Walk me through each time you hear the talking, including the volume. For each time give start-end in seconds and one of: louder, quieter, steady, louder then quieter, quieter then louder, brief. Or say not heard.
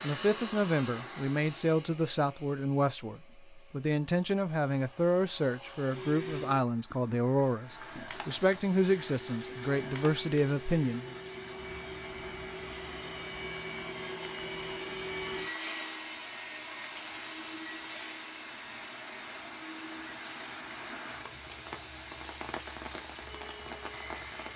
0.0-11.1 steady.